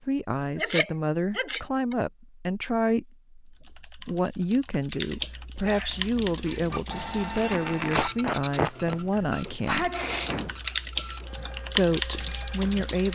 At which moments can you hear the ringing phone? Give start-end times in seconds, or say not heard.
not heard.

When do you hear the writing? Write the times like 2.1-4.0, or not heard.
not heard.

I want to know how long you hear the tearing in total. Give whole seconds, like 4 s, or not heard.
2 s.